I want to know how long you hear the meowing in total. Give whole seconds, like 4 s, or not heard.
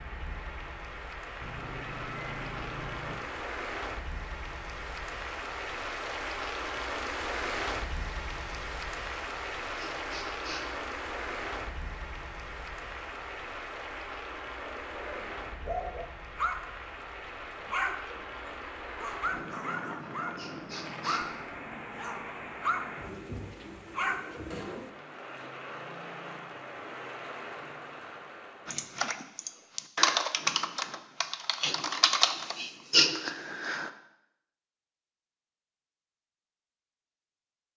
2 s.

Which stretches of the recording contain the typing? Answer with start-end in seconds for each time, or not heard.
28.6-33.9.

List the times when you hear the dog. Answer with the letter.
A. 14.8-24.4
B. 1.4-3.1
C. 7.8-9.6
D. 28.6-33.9
A.